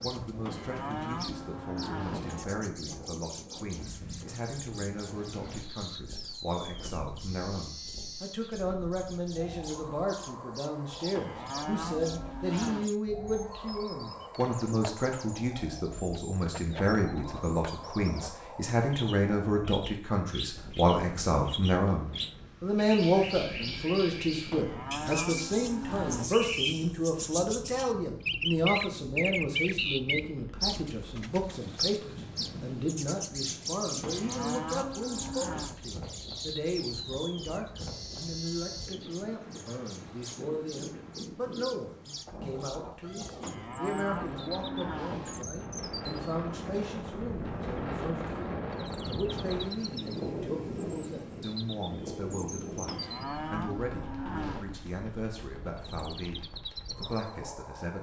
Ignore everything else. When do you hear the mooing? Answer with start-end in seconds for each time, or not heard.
0.5-2.5, 11.2-12.9, 24.5-26.4, 34.0-35.8, 43.4-45.5, 52.9-54.7.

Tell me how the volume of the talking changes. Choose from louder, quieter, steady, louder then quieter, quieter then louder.
louder then quieter.